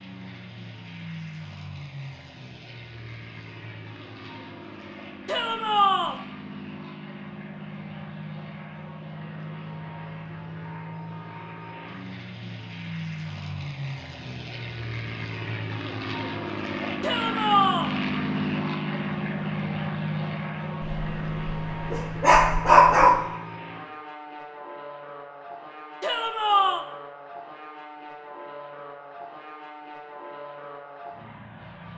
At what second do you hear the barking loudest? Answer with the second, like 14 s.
23 s.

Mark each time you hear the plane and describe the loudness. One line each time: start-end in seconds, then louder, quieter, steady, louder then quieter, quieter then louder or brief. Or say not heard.
0.0-31.9 louder then quieter.